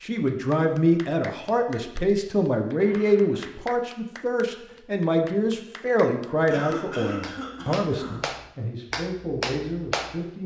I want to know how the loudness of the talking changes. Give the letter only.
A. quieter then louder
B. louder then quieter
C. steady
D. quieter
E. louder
D.